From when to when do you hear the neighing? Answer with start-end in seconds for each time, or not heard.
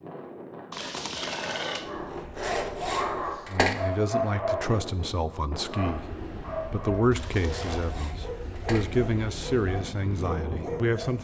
0.7-1.9, 7.1-8.0.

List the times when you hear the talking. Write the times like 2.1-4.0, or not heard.
3.5-11.1.